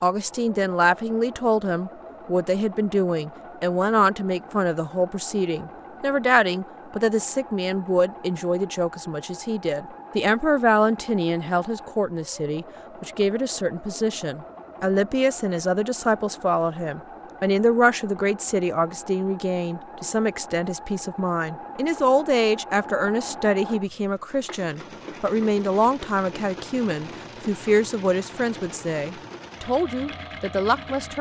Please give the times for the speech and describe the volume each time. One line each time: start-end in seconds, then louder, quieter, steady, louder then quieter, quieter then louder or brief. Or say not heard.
0.0-31.1 steady.